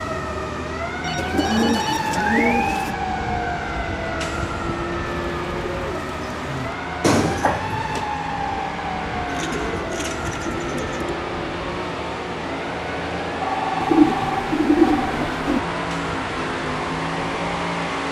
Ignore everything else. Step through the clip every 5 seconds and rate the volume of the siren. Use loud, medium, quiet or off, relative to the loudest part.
loud, loud, medium, medium.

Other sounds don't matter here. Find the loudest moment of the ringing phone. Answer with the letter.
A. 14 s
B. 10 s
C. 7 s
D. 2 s
C.